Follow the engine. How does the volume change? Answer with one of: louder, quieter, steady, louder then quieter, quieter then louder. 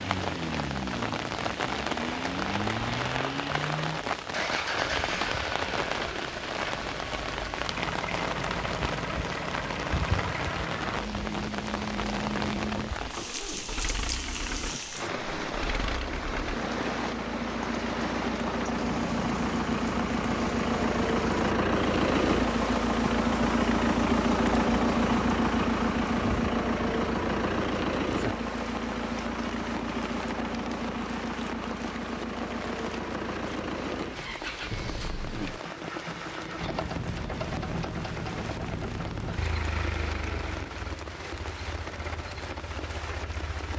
louder then quieter.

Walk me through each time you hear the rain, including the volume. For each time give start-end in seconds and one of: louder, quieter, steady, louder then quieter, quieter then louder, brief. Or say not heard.
0.0-43.7 quieter.